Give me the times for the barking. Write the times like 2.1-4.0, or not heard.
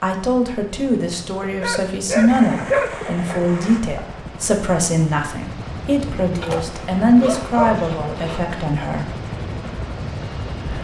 1.4-2.9, 6.4-8.4.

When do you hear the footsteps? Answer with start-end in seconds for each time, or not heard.
not heard.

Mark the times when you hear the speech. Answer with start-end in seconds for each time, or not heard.
0.0-9.1.